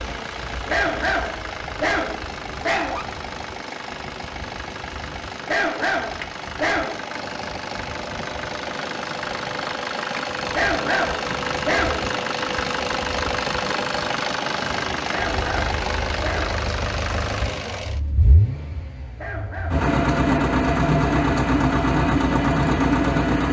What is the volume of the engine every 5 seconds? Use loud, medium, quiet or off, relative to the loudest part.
quiet, medium, medium, medium, loud.